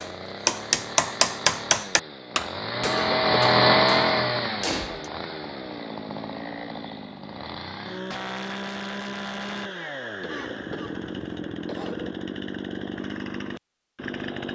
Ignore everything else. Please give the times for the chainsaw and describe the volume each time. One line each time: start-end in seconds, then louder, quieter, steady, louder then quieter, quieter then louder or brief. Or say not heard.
0.0-14.4 louder then quieter.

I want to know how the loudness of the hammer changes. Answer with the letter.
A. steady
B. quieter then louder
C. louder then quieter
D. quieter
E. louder
B.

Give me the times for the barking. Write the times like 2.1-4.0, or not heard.
not heard.